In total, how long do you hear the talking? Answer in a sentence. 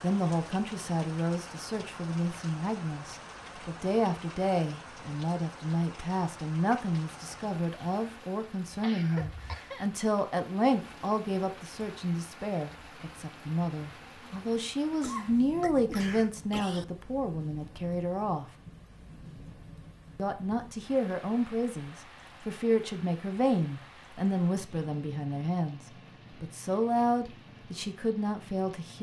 The talking can be heard for 27 seconds in total.